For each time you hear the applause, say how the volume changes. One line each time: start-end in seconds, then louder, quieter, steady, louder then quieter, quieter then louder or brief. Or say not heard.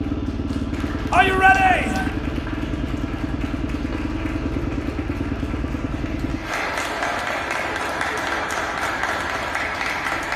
0.0-10.3 louder.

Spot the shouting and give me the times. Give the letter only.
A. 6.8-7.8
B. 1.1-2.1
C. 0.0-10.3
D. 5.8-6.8
B.